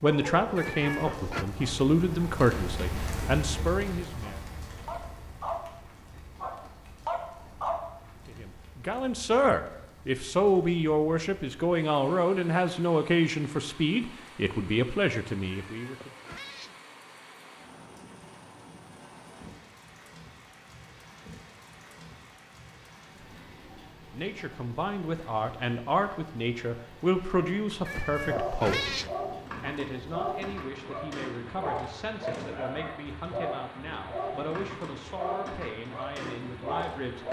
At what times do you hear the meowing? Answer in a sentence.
You can hear the meowing from 0.6 to 1.4 s, from 15.4 to 16.8 s and from 27.9 to 29.1 s.